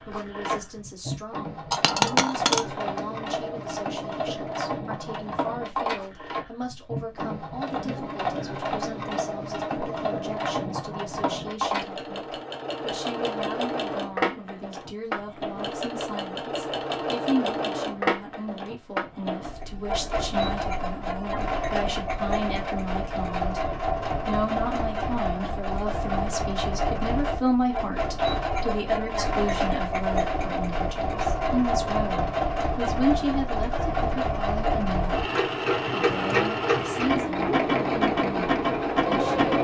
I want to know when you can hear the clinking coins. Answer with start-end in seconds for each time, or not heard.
1.7-2.6.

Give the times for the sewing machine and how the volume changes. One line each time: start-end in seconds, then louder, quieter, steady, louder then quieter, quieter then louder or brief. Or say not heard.
0.0-39.5 louder.